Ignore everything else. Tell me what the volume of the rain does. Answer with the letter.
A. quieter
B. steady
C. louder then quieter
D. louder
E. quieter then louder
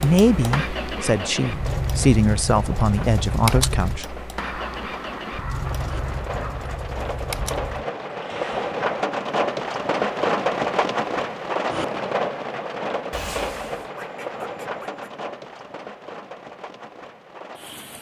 C.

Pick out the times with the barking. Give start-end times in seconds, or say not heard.
not heard.